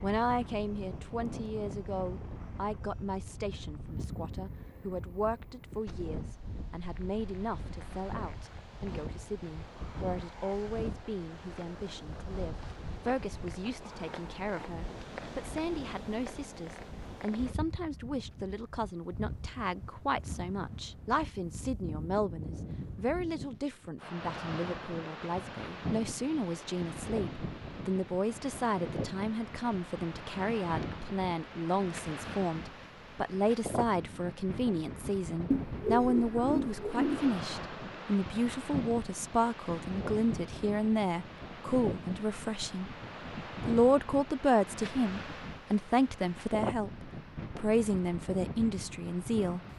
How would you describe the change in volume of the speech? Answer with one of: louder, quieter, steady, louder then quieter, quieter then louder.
louder.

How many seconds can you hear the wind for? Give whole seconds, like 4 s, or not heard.
50 s.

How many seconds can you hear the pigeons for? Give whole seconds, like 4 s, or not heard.
2 s.